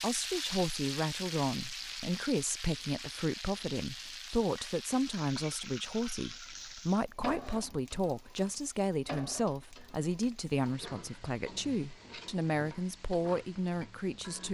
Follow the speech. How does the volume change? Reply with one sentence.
The loudness of the speech stays about the same.